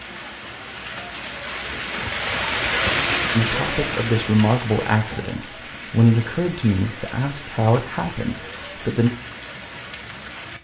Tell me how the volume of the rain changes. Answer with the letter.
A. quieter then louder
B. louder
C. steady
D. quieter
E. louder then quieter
E.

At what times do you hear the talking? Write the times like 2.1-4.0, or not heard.
3.3-9.1.